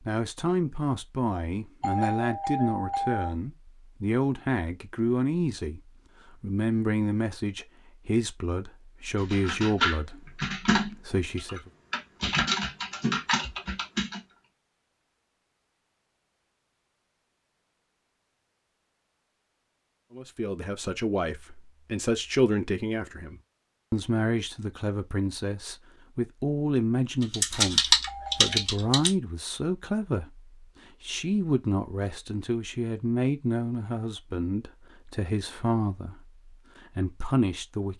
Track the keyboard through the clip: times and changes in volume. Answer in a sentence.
You can hear the keyboard from 9.2 to 14.2 s, getting quieter then louder; and briefly from 27.2 to 29.1 s.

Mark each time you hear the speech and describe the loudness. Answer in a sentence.
You can hear the speech from 0.0 to 11.7 s, at a steady volume; and from 20.1 to 37.9 s, at a steady volume.